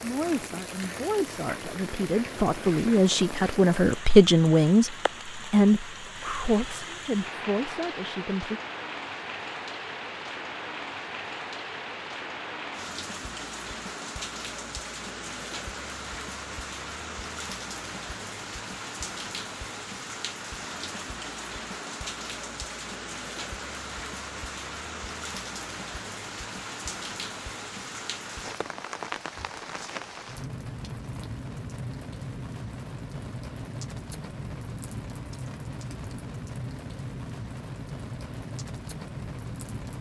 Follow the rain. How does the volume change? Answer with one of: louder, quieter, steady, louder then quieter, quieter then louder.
steady.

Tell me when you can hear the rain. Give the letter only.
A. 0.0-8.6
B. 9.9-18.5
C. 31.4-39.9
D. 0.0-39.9
D.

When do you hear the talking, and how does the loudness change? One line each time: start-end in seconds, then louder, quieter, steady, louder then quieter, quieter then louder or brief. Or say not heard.
0.0-8.6 louder then quieter.